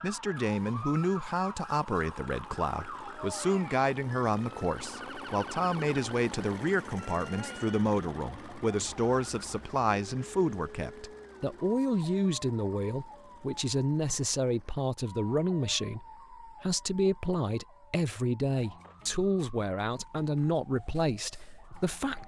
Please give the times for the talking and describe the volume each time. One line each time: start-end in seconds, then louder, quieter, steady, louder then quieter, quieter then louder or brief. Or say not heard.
0.0-22.2 steady.